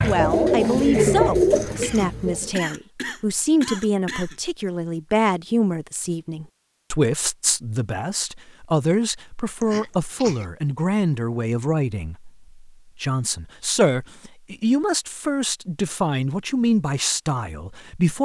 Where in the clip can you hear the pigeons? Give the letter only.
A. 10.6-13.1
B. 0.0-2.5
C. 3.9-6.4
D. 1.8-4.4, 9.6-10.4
B.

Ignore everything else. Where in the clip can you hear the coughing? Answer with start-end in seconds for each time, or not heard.
1.8-4.4, 9.6-10.4.